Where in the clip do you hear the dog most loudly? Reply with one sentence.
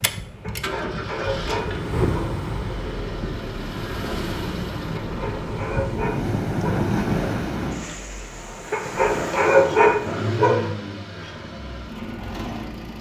The loudest moment of the dog is at 10 seconds.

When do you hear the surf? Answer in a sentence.
You can hear the surf from 0.0 to 10.2 s.